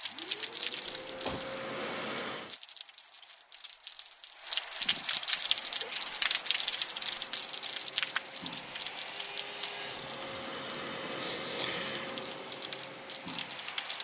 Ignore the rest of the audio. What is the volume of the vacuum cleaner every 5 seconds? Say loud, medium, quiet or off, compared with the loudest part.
loud, medium, loud.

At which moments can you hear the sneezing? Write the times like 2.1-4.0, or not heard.
1.1-1.6, 4.8-6.2, 11.2-12.2.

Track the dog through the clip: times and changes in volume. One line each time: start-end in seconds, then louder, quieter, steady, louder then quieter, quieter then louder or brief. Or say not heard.
not heard.